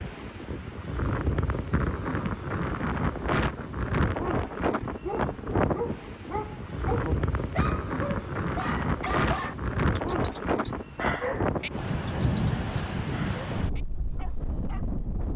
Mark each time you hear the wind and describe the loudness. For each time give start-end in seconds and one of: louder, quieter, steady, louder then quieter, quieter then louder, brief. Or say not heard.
0.0-15.3 steady.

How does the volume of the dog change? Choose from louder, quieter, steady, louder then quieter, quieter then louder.
quieter.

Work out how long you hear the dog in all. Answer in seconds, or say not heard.
10 s.